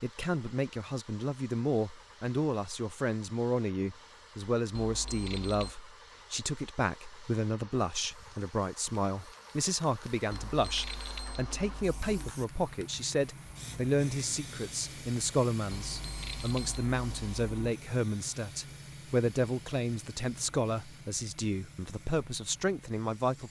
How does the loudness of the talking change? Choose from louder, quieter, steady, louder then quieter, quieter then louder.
steady.